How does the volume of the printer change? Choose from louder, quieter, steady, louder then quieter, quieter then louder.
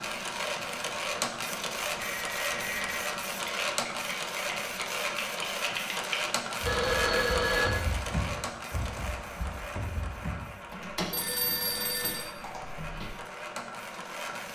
quieter.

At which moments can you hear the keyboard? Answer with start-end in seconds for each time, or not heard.
3.6-13.1.